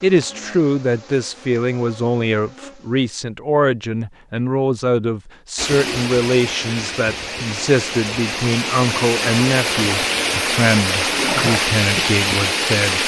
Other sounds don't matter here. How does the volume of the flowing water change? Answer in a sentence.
The loudness of the flowing water goes up.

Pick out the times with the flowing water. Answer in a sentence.
The flowing water can be heard from 5.5 to 13.0 s.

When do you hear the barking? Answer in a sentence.
You can't hear the barking here.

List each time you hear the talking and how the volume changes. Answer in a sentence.
The talking can be heard from 0.0 to 13.0 s, at a steady volume.